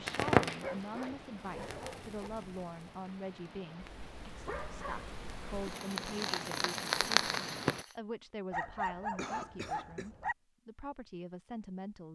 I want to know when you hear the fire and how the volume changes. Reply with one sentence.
You can hear the fire from 0.1 to 8.0 s, getting quieter then louder.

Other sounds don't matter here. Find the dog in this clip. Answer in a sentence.
The dog can be heard from 0.5 to 2.3 s, from 4.2 to 5.7 s and from 8.5 to 10.3 s.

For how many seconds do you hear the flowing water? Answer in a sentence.
You can hear the flowing water for 8 seconds altogether.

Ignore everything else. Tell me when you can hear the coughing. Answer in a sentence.
The coughing can be heard from 9.2 to 10.1 s.